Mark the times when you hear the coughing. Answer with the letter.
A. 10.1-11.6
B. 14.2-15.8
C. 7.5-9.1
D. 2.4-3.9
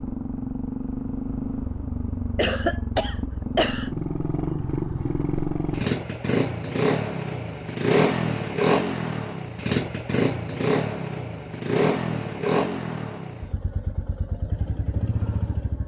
D.